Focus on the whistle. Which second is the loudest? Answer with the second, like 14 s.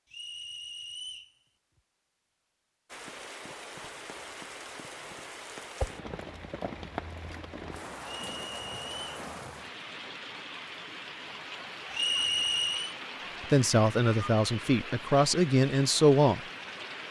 12 s.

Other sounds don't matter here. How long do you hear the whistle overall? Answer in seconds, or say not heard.
3 s.